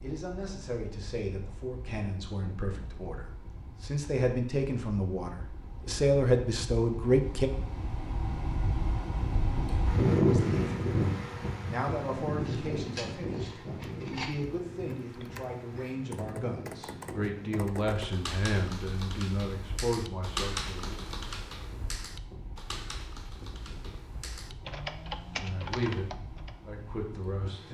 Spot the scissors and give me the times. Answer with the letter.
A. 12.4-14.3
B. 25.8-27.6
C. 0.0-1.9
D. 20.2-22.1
A.